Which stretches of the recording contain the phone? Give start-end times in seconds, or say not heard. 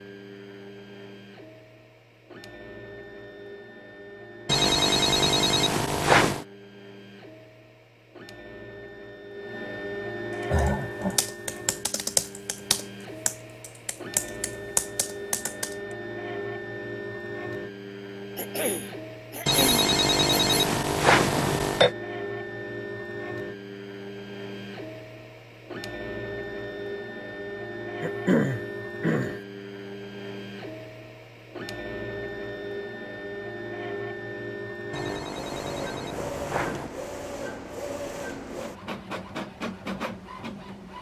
4.5-6.5, 19.4-21.9, 34.9-36.9.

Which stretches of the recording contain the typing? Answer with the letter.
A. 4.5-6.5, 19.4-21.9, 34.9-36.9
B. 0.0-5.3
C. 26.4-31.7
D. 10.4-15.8
D.